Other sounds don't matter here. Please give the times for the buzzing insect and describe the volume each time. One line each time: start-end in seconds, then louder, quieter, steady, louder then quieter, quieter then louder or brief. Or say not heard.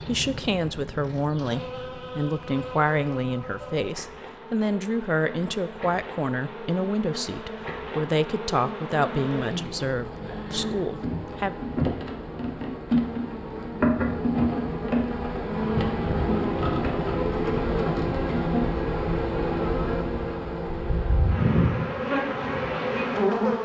0.0-23.6 louder.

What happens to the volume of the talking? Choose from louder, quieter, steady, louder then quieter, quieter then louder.
steady.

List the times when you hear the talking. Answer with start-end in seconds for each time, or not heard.
0.1-11.6.